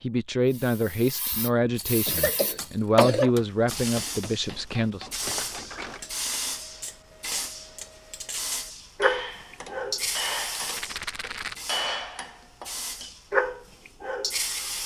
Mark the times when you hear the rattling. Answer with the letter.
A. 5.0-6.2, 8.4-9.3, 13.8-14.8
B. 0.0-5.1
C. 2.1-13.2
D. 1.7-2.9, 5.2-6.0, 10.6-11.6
D.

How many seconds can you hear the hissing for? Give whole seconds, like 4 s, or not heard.
14 s.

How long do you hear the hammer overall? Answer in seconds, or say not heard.
11 s.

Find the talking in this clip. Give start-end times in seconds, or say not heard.
0.0-5.1.